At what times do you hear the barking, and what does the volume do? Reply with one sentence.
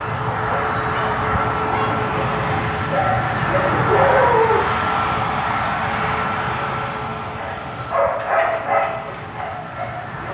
The barking can be heard from 0.0 to 4.7 s, getting louder; and briefly from 7.2 to 9.9 s.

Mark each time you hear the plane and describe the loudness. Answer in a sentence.
You can hear the plane from 0.0 to 10.2 s, getting quieter.